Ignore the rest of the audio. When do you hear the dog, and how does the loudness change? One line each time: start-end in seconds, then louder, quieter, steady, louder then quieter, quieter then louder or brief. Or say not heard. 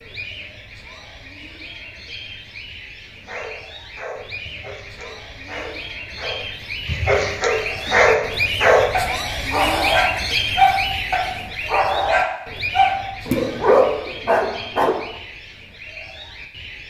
3.2-14.9 louder.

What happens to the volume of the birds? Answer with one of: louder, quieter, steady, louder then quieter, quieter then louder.
louder then quieter.